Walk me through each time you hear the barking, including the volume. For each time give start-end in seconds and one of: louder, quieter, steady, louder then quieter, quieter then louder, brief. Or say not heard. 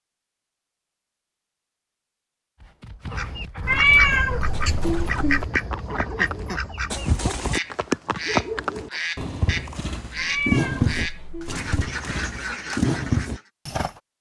not heard.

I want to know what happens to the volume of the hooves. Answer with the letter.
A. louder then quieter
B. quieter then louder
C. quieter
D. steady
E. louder
E.